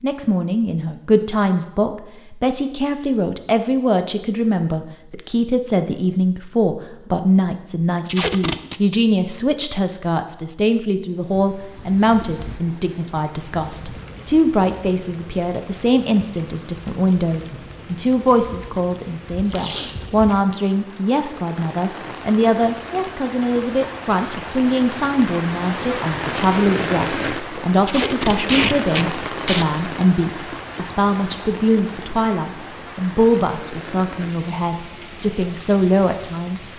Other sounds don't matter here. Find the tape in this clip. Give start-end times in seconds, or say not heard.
8.1-8.8, 19.4-20.6, 27.8-29.6.